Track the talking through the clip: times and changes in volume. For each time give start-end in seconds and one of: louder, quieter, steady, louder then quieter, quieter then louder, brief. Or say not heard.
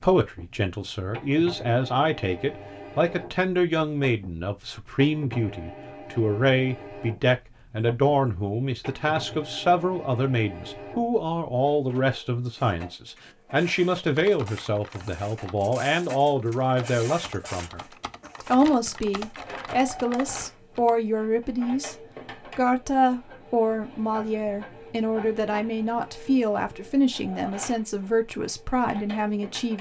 0.0-29.7 steady.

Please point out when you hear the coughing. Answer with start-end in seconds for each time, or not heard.
not heard.